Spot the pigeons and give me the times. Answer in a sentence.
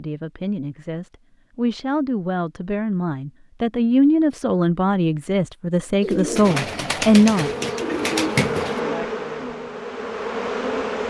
You can hear the pigeons from 6.0 to 8.8 s.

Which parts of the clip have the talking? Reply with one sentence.
The talking can be heard from 0.0 to 7.5 s.